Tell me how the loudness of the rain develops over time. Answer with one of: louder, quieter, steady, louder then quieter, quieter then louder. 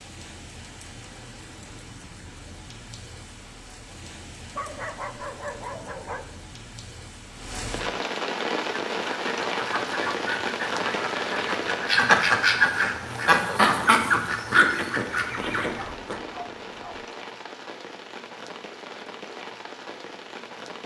louder then quieter.